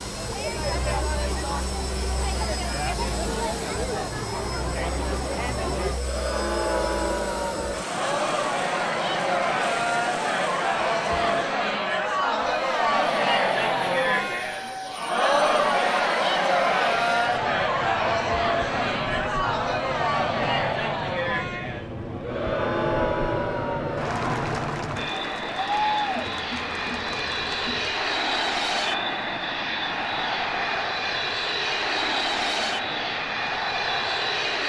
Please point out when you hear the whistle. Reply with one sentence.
The whistle can't be heard in this clip.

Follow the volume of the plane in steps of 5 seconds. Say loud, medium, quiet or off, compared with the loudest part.
medium, medium, medium, medium, medium, loud, loud.